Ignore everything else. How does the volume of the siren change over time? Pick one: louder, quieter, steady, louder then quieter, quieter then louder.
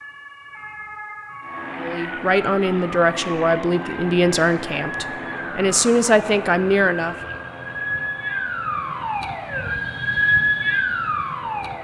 louder.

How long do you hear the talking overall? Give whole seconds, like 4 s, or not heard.
5 s.